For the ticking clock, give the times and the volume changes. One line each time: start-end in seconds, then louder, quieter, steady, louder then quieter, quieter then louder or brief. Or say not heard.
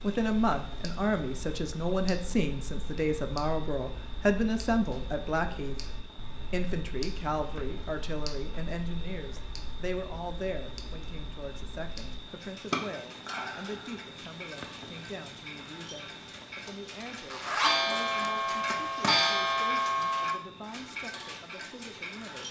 0.0-22.4 louder.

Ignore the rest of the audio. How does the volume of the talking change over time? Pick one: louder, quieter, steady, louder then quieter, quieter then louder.
quieter.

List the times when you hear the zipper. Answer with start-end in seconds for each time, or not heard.
17.3-19.1.